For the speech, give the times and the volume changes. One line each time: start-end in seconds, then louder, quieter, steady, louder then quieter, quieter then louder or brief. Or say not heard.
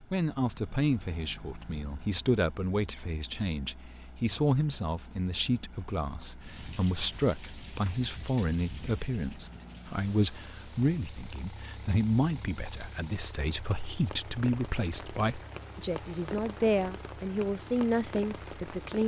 0.1-19.0 steady.